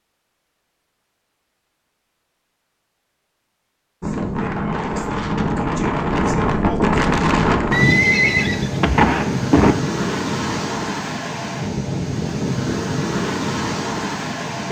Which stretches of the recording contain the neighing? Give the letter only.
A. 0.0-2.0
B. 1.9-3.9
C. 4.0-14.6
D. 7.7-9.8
D.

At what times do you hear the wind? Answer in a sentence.
The wind can be heard from 4.0 to 14.6 s.